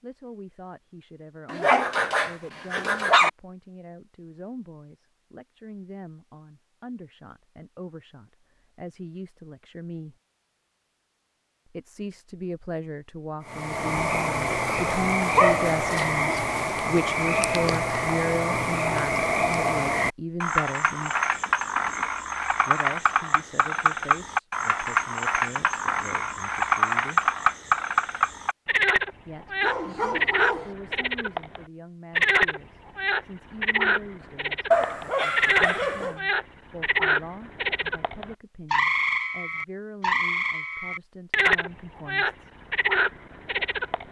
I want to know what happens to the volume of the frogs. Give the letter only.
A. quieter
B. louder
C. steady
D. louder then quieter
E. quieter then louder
C.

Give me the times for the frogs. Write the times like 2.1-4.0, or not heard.
13.4-44.0.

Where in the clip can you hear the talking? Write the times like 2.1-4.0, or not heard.
0.0-10.2, 11.7-21.1, 22.6-27.3, 29.2-42.5.